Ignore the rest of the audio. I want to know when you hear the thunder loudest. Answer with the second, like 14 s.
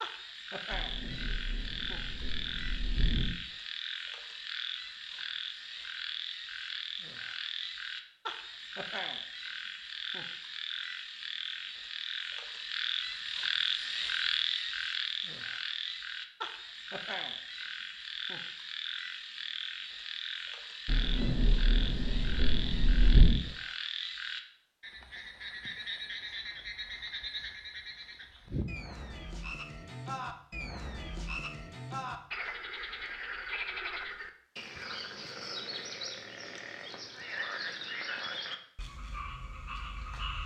23 s.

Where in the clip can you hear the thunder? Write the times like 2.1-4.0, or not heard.
0.7-3.4, 20.9-23.4.